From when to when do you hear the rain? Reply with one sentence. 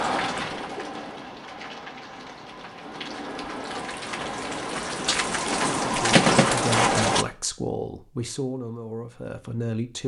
The rain can be heard from 0.0 to 7.2 s.